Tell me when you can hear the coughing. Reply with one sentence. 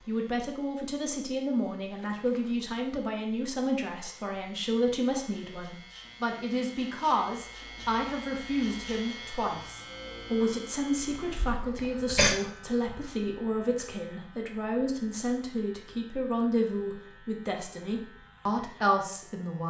You can hear the coughing from 11.1 to 12.3 s.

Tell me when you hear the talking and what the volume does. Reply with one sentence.
You can hear the talking from 0.0 to 19.6 s, at a steady volume.